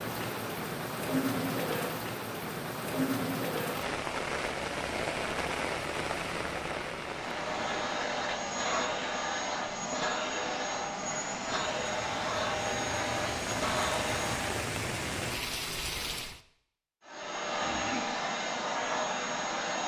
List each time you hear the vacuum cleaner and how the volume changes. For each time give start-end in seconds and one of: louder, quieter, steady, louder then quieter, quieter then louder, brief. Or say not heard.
7.1-14.6 steady
17.1-19.8 brief.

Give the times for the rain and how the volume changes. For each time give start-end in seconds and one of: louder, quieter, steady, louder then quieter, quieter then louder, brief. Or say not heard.
0.0-16.4 quieter then louder.